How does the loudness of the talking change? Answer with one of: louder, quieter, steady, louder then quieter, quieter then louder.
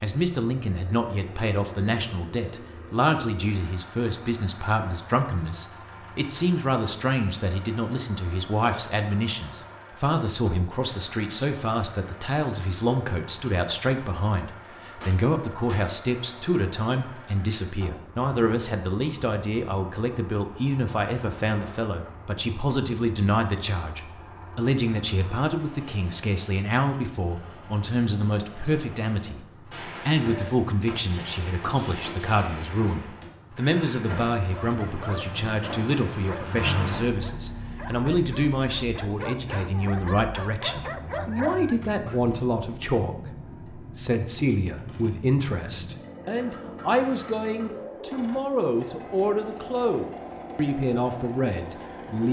steady.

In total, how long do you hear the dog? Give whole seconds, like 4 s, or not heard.
8 s.